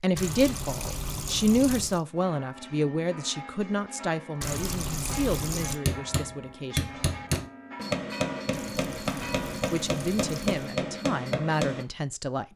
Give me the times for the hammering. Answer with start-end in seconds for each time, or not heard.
5.8-11.8.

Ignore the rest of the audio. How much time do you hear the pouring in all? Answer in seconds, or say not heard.
5 s.